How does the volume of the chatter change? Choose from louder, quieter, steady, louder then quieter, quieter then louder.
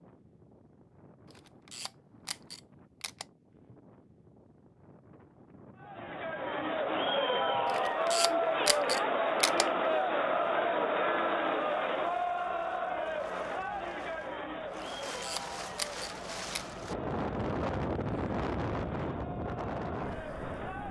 quieter.